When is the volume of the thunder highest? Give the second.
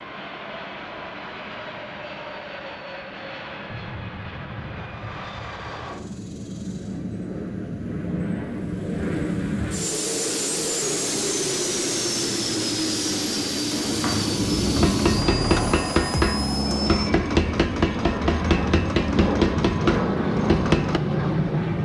15 s.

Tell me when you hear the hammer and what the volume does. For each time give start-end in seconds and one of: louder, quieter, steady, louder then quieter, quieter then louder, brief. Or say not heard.
14.7-21.0 steady.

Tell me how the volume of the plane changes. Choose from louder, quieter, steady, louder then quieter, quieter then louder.
louder.